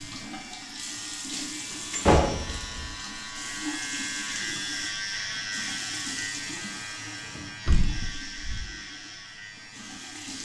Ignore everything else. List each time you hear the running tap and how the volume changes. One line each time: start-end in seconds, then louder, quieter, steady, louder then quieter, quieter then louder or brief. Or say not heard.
0.0-10.3 quieter.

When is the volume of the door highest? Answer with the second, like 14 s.
2 s.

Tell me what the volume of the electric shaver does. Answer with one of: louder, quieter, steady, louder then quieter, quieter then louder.
louder then quieter.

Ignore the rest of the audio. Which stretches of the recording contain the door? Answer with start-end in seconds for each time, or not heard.
1.9-3.0, 7.7-8.7.